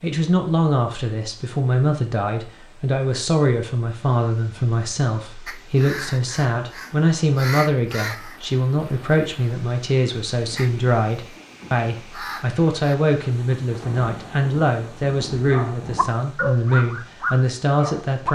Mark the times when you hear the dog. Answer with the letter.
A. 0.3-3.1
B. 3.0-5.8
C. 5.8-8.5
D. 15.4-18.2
D.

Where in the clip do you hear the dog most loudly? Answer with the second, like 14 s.
17 s.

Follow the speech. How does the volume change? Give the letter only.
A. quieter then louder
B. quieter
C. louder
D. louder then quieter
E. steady
E.